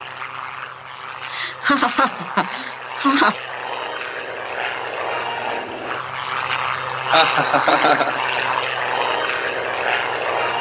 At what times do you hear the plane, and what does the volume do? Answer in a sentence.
The plane can be heard from 0.0 to 10.5 s, getting louder.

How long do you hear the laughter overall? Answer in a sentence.
The laughter can be heard for 3 seconds in total.